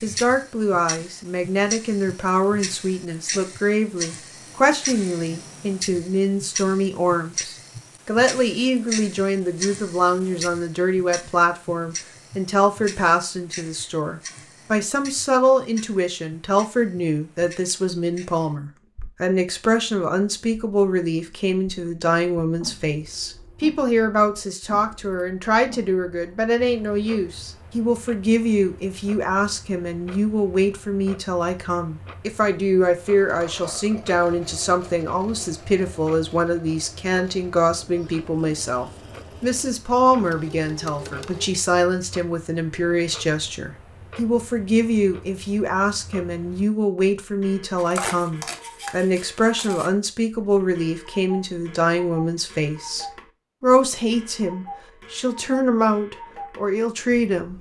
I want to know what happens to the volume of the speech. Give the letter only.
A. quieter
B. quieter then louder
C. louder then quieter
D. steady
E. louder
D.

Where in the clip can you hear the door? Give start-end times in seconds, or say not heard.
not heard.